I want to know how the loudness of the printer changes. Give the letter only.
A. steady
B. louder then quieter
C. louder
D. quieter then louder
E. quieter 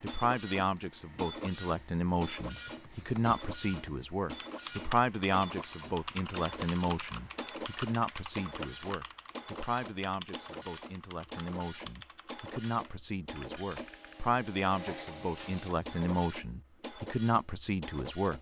A.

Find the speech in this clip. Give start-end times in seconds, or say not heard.
0.0-18.3.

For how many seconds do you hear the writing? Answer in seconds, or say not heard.
not heard.